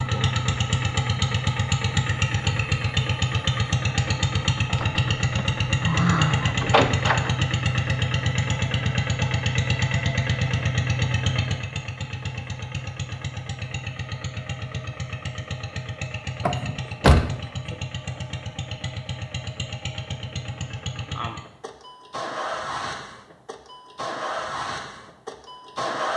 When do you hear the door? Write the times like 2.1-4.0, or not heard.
4.8-7.3, 16.4-17.8.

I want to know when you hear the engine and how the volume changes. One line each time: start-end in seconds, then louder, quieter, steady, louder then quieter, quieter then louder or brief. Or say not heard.
0.0-26.1 quieter.